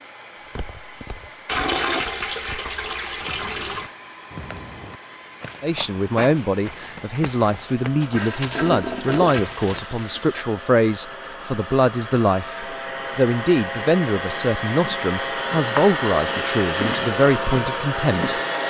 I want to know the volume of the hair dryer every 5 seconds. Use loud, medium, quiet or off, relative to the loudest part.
quiet, quiet, medium, loud.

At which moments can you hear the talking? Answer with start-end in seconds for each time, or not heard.
5.6-18.6.